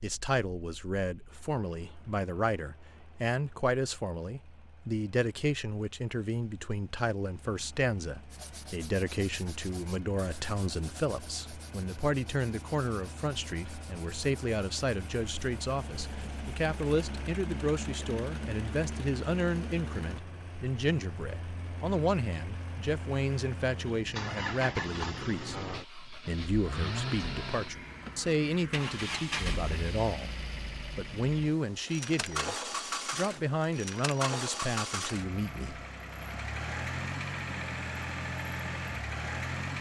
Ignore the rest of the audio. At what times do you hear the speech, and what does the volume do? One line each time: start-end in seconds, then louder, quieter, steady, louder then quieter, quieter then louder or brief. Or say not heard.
0.0-35.8 steady.